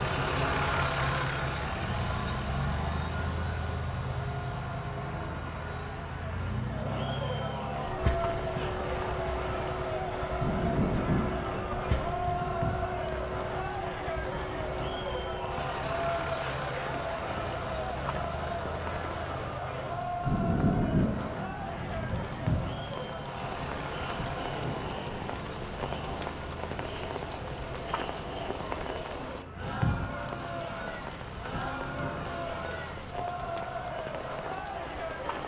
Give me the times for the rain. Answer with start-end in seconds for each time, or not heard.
7.8-35.4.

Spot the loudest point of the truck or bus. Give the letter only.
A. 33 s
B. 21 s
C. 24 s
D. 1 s
D.